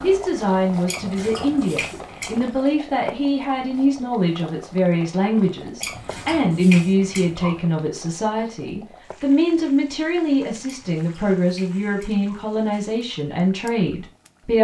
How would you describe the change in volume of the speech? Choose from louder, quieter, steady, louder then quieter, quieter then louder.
steady.